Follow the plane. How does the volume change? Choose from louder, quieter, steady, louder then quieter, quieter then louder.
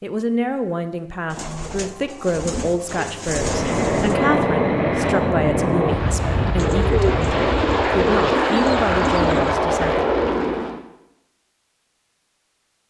steady.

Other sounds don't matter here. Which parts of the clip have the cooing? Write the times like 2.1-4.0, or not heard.
1.3-4.2, 6.5-9.6.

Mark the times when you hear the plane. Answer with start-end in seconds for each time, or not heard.
3.2-10.8.